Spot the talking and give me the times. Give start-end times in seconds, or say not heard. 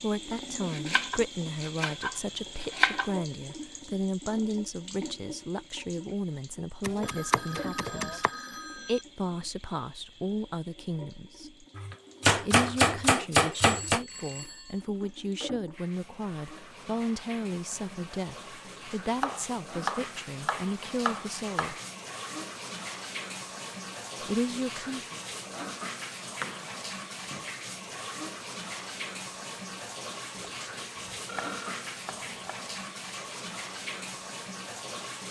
0.0-11.7, 12.3-21.8, 24.2-25.2.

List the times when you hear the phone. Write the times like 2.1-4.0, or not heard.
7.0-9.1, 13.5-14.8, 31.2-31.9.